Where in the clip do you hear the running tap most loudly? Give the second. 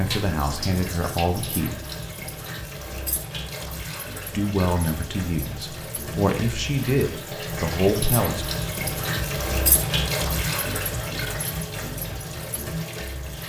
10 s.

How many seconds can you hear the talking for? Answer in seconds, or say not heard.
6 s.